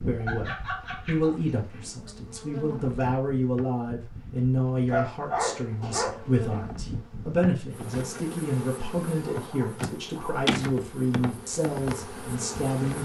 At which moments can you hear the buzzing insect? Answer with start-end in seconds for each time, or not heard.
0.0-13.0.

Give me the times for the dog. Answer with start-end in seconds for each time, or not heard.
0.2-1.9, 4.8-6.4, 9.2-10.4.